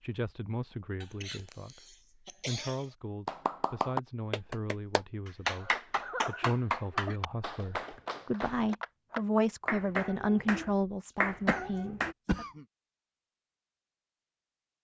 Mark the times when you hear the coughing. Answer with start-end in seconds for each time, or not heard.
1.0-2.9, 5.5-7.2, 11.1-12.7.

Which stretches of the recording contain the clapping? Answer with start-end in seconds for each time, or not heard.
3.2-12.2.